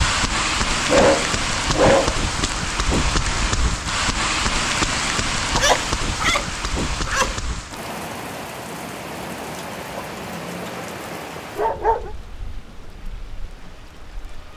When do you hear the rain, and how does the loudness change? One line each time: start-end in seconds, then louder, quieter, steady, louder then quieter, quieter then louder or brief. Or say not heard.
0.0-14.5 quieter.